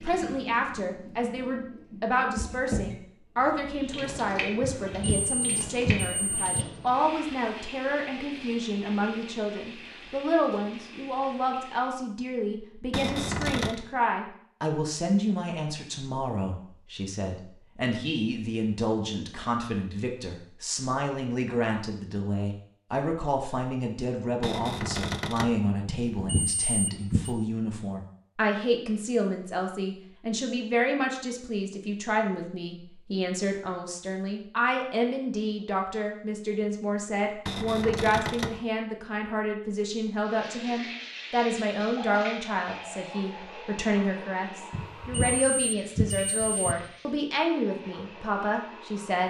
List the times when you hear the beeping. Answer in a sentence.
The beeping can be heard from 4.6 to 6.5 s, from 25.9 to 27.4 s and from 44.7 to 46.8 s.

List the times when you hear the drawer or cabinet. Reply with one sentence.
The drawer or cabinet can be heard from 12.9 to 13.8 s, from 24.4 to 25.6 s and from 37.5 to 38.6 s.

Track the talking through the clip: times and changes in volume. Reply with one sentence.
The talking can be heard from 0.0 to 49.2 s, at a steady volume.